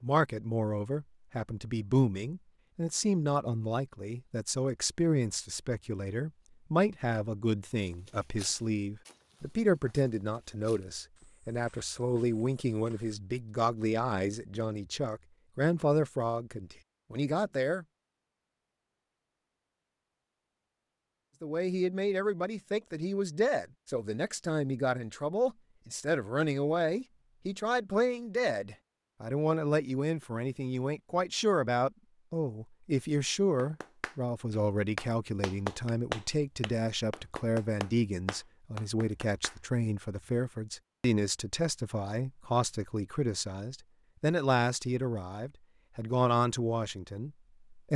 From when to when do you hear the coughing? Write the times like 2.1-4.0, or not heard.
not heard.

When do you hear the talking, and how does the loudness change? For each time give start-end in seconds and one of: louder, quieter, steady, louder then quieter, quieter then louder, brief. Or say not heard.
0.0-17.9 steady
21.4-47.9 steady.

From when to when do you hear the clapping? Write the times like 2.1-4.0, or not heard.
33.5-39.5.